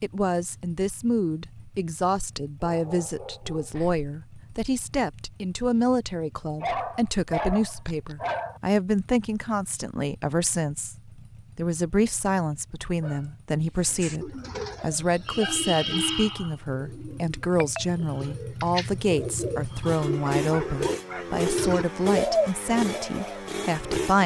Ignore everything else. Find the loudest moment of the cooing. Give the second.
22 s.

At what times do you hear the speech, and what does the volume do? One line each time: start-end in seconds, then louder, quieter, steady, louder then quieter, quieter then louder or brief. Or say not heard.
0.0-24.2 steady.